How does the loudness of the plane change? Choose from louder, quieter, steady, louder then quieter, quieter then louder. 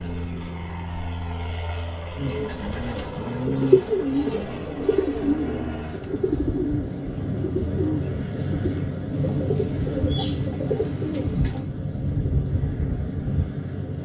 louder.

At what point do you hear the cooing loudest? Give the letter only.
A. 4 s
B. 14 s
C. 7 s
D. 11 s
A.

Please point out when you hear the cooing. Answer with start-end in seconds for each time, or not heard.
2.1-11.7.